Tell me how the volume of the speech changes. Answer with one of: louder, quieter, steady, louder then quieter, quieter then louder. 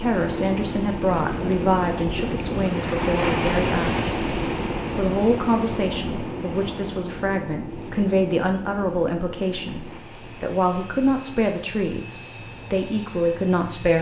steady.